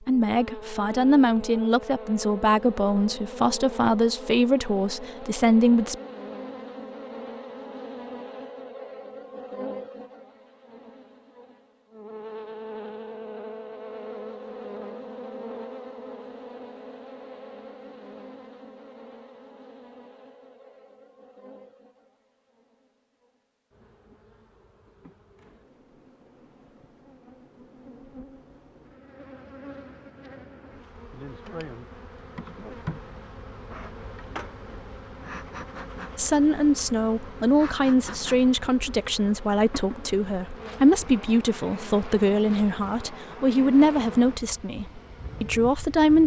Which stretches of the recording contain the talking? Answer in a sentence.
The talking can be heard from 0.1 to 6.0 s and from 36.1 to 46.2 s.